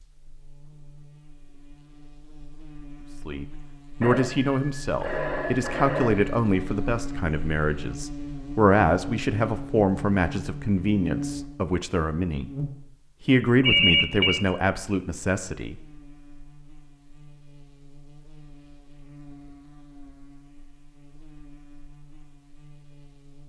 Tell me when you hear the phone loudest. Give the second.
14 s.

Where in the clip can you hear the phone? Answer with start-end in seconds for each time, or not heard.
4.0-6.3, 13.6-14.4.